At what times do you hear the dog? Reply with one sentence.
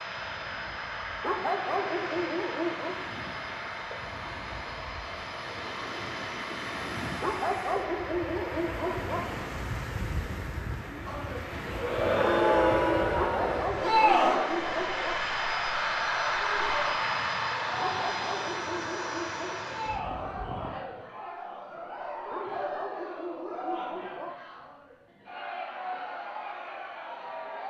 You can hear the dog from 1.2 to 3.0 s, from 7.2 to 9.2 s, from 13.2 to 15.2 s, from 17.8 to 19.7 s and from 22.3 to 24.3 s.